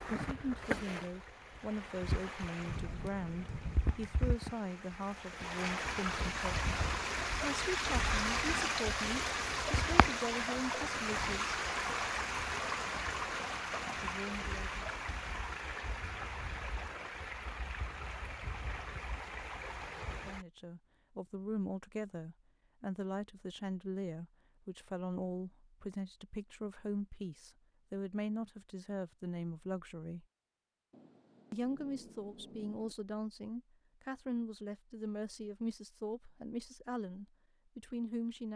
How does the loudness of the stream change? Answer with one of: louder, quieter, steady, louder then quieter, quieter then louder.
louder then quieter.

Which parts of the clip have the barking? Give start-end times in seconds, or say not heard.
not heard.